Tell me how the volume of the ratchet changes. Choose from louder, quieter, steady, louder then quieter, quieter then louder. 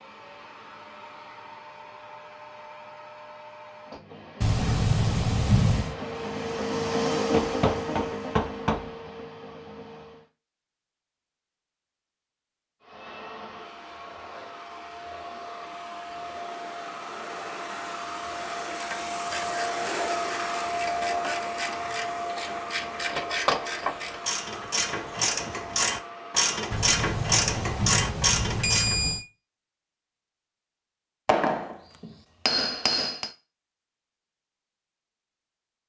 louder.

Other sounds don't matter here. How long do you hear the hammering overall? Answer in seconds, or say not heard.
4 s.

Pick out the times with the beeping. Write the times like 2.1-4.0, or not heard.
4.4-6.0, 26.7-29.2.